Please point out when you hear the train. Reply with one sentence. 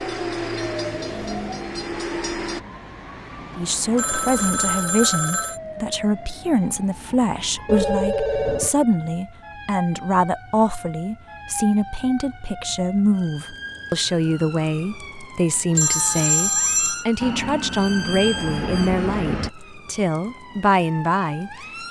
The train can be heard from 0.0 to 2.6 s and from 17.2 to 19.5 s.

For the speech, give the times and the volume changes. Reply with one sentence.
You can hear the speech from 3.5 to 21.8 s, at a steady volume.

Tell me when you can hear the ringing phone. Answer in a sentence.
You can hear the ringing phone from 4.0 to 5.6 s, from 7.7 to 8.8 s and from 15.8 to 17.1 s.